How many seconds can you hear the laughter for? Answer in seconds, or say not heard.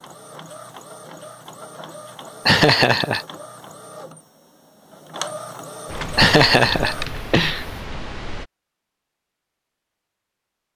2 s.